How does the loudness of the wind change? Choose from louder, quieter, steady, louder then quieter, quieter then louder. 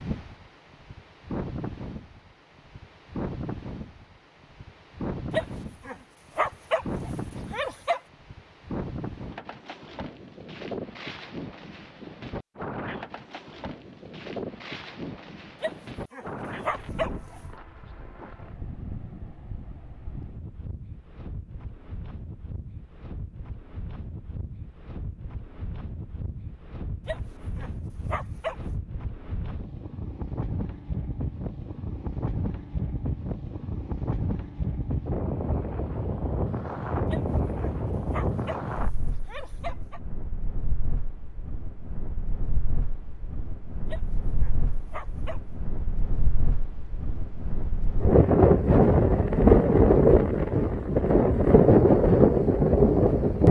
louder.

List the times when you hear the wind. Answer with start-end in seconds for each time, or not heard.
0.0-53.4.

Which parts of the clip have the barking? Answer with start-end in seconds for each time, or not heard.
5.3-8.0, 15.6-17.4, 27.1-28.6, 37.1-40.0, 43.9-45.4.